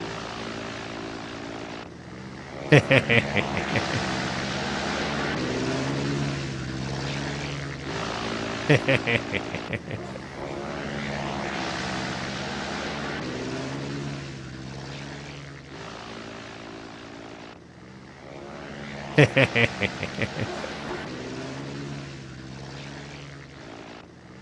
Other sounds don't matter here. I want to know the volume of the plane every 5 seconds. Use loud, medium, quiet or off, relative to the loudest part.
loud, loud, loud, medium, medium.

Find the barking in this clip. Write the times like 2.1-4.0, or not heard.
2.7-4.0, 8.7-10.5, 19.1-21.0.